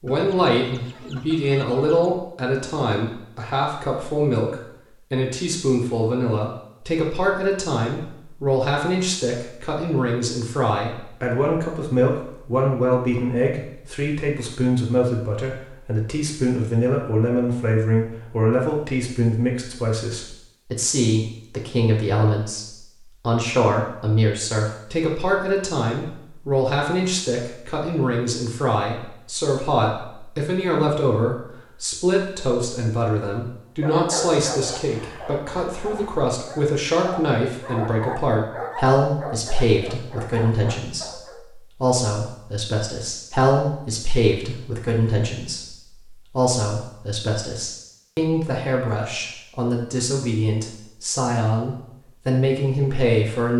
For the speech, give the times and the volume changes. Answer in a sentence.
The speech can be heard from 0.0 to 53.5 s, at a steady volume.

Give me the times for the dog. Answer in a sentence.
The dog can be heard from 33.8 to 41.4 s.